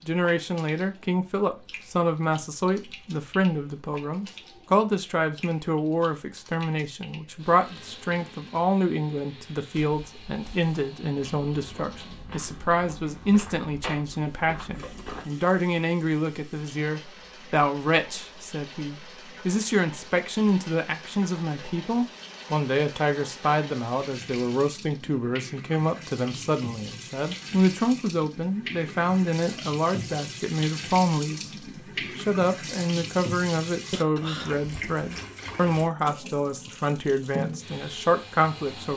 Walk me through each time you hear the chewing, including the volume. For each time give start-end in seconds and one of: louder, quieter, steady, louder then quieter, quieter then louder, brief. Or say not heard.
not heard.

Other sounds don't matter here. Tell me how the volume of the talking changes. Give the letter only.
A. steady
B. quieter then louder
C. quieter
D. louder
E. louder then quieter
A.